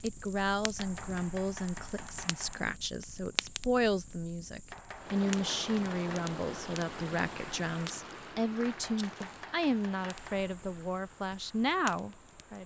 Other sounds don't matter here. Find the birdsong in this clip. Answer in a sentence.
You can't hear the birdsong here.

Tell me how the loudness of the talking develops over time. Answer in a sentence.
The volume of the talking stays about the same.